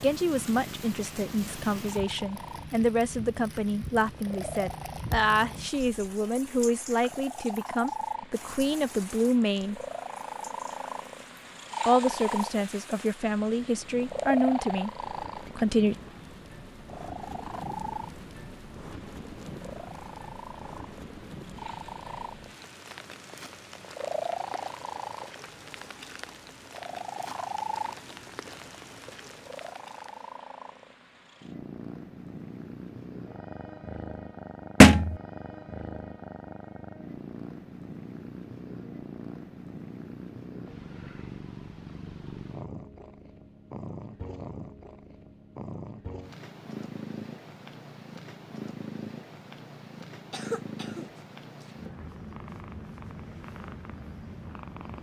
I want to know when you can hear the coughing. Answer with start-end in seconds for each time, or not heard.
50.3-51.7.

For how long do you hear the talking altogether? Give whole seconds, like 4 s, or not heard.
14 s.